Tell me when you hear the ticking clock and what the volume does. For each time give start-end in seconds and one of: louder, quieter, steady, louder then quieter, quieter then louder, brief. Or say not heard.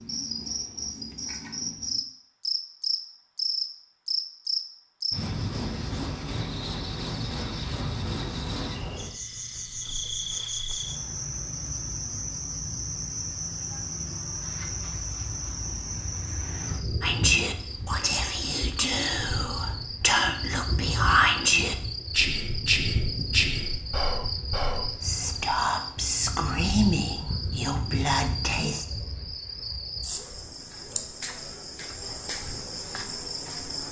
not heard.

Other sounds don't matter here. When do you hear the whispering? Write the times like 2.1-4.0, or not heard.
17.0-28.9.